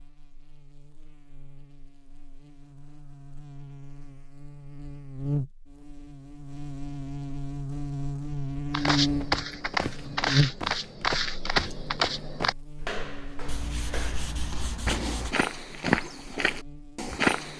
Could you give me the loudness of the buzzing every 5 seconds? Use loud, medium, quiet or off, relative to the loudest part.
quiet, loud, loud, quiet.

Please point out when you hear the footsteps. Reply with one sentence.
The footsteps can be heard from 8.7 to 17.5 s.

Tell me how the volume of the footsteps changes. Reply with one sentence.
The loudness of the footsteps goes down, then up.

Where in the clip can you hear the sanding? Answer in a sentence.
You can hear the sanding from 13.4 to 15.3 s.